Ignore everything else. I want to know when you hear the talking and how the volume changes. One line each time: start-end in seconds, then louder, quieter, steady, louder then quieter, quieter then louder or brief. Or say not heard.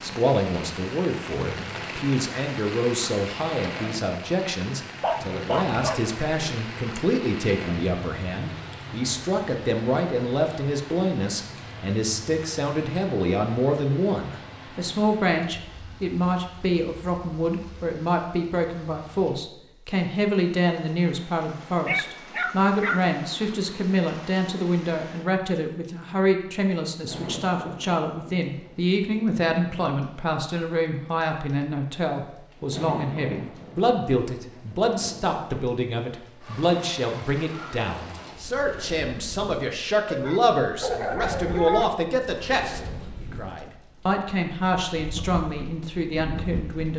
0.0-46.9 steady.